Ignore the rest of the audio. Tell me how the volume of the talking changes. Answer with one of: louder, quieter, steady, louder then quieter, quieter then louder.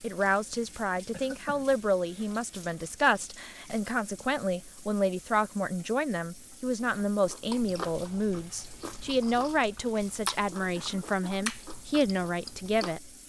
steady.